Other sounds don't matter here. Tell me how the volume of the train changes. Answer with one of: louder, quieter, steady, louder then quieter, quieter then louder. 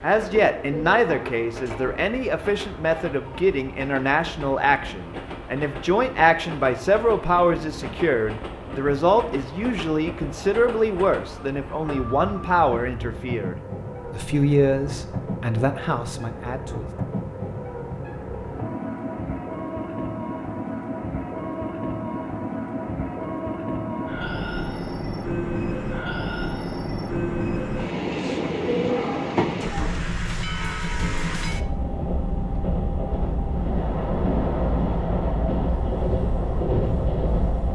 louder.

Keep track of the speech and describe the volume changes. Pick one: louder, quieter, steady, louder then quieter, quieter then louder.
steady.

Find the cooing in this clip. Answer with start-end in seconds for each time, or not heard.
0.3-2.0, 28.2-30.0.